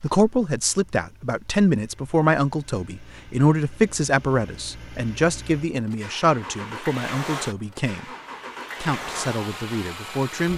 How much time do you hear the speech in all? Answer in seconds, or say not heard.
10 s.